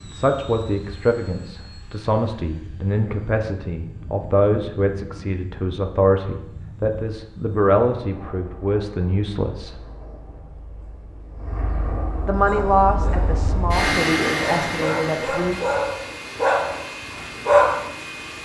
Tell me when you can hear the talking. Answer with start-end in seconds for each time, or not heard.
0.0-9.8, 12.2-15.6.